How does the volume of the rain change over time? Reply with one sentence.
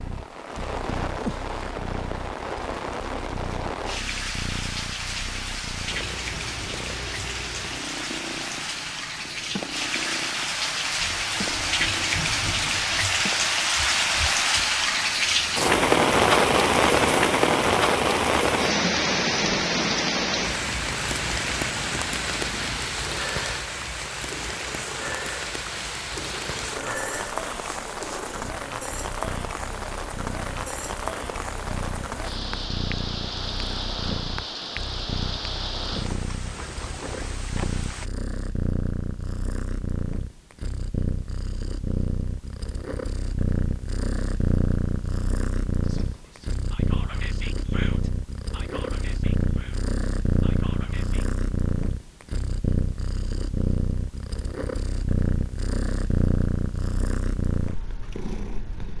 The loudness of the rain goes up, then down.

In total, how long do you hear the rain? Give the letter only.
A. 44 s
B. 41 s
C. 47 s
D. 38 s
D.